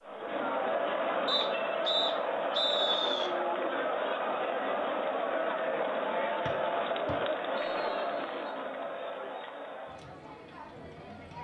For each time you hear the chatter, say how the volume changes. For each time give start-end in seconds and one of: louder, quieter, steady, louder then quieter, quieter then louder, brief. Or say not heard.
0.0-11.3 quieter.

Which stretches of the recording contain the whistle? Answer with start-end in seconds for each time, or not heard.
1.2-3.3, 6.5-8.5.